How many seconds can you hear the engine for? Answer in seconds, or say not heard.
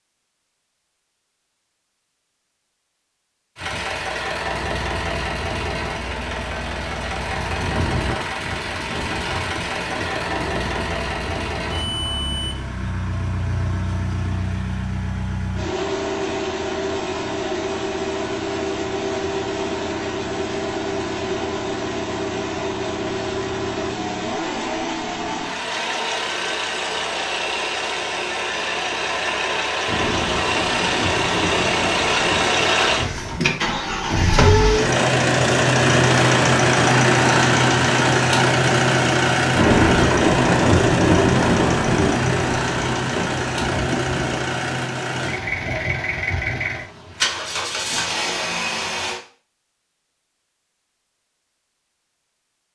46 s.